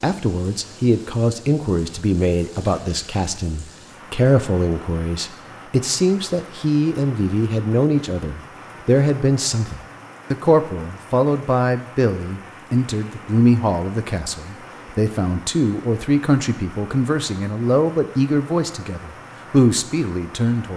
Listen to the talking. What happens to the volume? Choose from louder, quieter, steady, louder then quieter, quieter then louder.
steady.